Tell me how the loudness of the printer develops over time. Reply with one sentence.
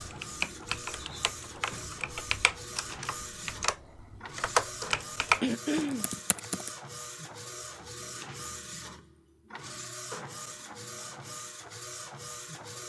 The loudness of the printer stays about the same.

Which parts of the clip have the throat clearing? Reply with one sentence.
You can hear the throat clearing from 5.4 to 6.0 s.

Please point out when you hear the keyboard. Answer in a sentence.
The keyboard can be heard from 0.0 to 6.7 s.